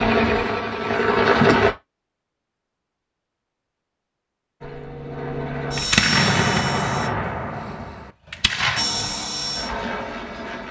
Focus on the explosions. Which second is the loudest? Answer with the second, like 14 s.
6 s.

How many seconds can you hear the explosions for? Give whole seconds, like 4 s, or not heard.
3 s.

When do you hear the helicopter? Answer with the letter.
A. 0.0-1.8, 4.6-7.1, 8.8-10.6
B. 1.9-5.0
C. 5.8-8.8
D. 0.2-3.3
A.